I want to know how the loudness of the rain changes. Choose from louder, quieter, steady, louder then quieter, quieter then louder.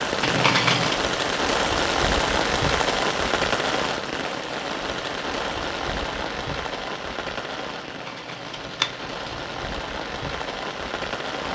quieter.